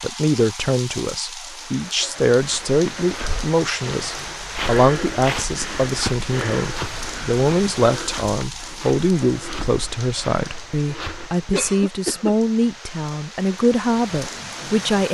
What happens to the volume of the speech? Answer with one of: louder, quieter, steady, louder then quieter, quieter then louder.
steady.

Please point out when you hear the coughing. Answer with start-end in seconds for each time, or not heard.
11.5-12.3.